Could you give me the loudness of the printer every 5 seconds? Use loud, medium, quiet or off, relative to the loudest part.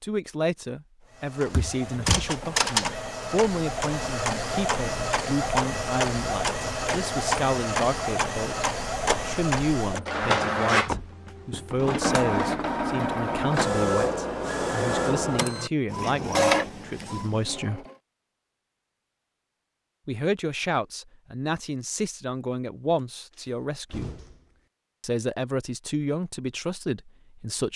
loud, loud, loud, loud, off, off.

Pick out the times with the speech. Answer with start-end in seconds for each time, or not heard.
0.0-17.9, 20.1-24.1, 25.0-27.7.